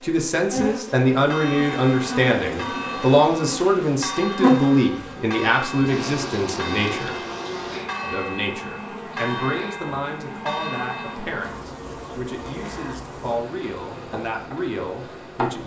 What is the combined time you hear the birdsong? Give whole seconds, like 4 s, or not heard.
not heard.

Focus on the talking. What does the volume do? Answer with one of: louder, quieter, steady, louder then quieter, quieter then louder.
quieter.